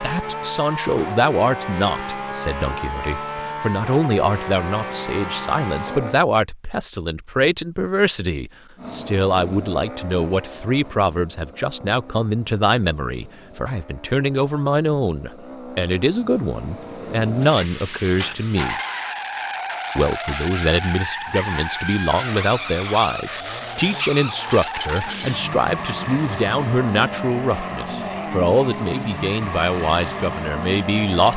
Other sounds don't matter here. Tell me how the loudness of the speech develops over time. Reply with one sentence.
The loudness of the speech stays about the same.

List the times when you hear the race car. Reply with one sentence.
You can hear the race car from 0.0 to 6.2 s and from 8.8 to 31.3 s.